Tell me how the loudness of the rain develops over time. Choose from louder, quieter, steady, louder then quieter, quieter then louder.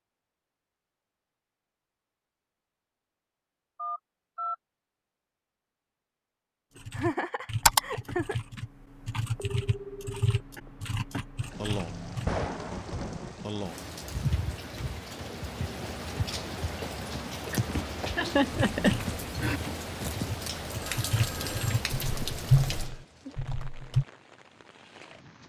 quieter.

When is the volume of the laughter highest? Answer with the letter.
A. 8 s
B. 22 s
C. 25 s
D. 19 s
D.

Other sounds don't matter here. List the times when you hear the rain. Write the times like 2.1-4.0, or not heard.
11.4-25.4.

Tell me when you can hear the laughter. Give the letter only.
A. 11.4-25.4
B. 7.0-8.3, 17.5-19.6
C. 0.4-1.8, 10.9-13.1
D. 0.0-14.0
B.